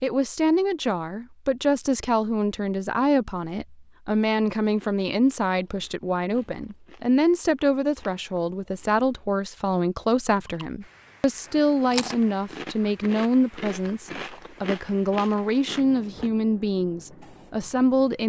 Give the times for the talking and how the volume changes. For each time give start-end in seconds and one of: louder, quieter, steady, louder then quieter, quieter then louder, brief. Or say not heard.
0.0-18.2 steady.